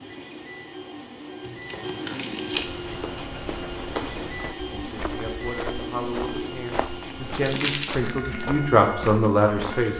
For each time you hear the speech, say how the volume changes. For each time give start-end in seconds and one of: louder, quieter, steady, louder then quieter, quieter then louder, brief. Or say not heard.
4.1-9.9 louder.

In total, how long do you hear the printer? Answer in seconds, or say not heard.
10 s.